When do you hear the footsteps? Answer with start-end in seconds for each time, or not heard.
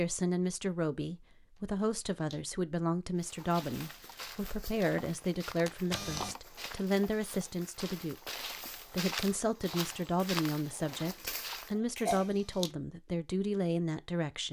3.1-11.8.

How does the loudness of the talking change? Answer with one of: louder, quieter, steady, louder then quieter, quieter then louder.
steady.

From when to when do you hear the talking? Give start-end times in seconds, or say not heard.
0.0-14.4.